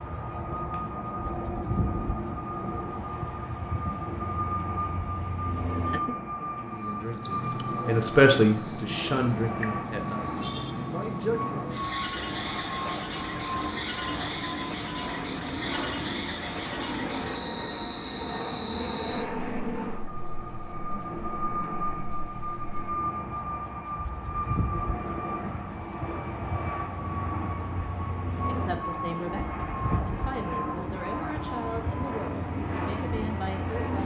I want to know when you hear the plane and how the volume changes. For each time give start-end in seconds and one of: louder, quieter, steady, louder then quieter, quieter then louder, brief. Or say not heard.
0.0-34.0 steady.